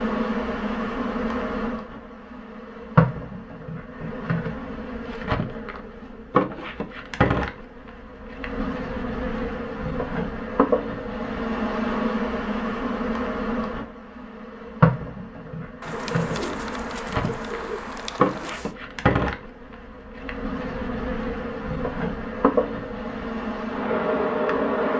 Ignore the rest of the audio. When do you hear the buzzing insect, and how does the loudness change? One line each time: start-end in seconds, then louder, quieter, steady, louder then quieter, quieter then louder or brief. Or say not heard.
0.0-24.9 steady.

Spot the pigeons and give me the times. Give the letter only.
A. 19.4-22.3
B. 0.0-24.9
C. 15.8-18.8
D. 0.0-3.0
C.